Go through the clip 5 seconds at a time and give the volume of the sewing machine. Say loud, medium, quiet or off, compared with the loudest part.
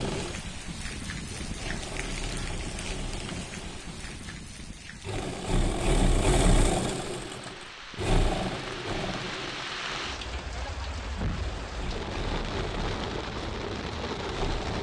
medium, loud, medium.